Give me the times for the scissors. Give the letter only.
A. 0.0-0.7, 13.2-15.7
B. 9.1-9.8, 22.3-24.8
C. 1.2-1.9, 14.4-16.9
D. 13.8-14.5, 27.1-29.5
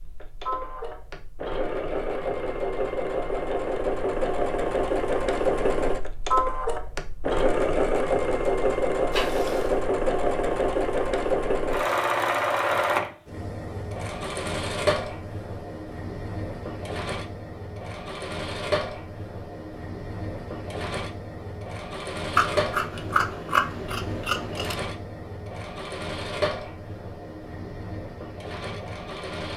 B.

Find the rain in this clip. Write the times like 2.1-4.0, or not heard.
not heard.